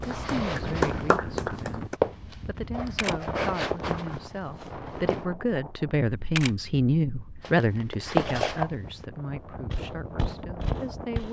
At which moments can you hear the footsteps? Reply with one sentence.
The footsteps can be heard from 0.0 to 5.3 s, from 7.4 to 9.1 s and from 9.7 to 11.2 s.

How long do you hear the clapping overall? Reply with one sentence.
The clapping can be heard for 2 seconds in total.